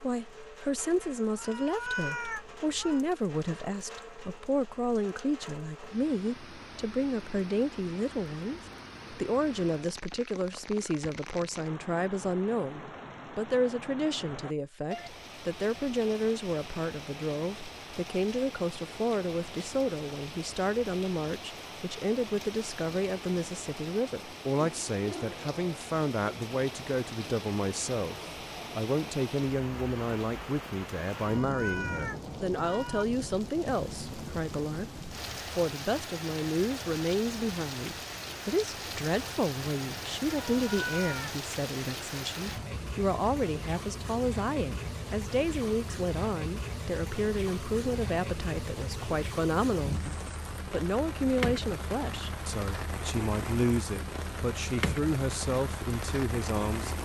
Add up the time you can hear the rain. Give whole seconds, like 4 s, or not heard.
57 s.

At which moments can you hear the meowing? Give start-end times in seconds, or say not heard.
1.4-3.0, 31.1-33.0, 40.3-41.3.